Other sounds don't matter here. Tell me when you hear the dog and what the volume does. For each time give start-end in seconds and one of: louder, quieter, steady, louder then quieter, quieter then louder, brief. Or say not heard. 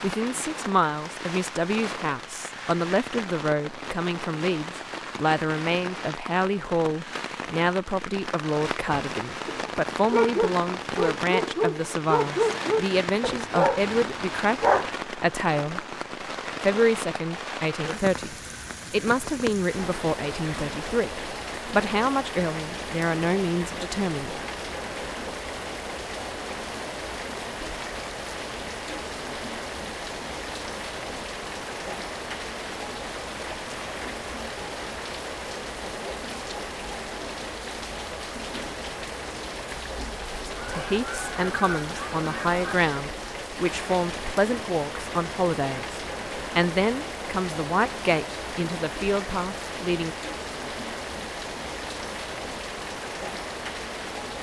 8.8-14.9 steady.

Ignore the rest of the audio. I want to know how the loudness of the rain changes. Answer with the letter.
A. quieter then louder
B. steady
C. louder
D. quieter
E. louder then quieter
B.